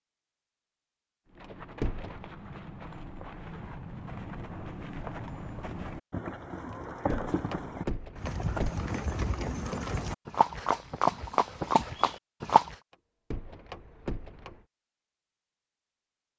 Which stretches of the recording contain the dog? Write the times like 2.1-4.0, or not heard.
not heard.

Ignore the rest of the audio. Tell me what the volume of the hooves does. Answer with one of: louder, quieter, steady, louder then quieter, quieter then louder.
louder.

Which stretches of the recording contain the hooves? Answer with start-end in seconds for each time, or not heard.
1.2-12.8.